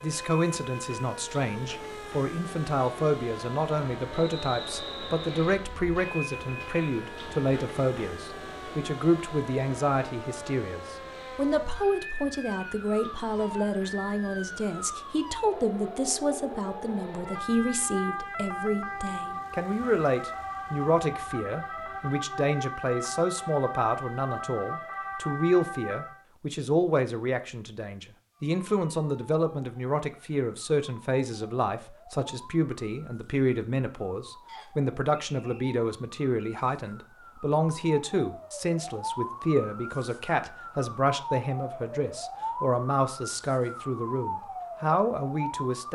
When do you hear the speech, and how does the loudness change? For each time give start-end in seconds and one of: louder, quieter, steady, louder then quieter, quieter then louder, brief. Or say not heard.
0.0-45.9 steady.